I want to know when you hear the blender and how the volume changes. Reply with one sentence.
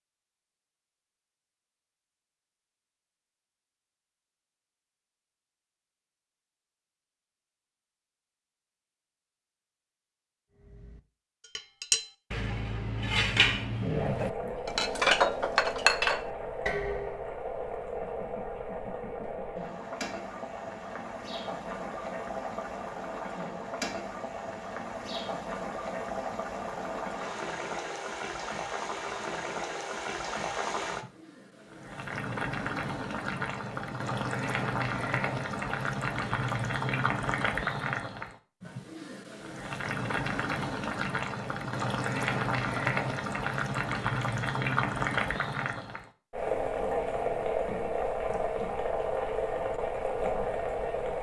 The blender can't be heard in this clip.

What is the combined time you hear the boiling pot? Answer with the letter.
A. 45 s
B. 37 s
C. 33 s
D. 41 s
B.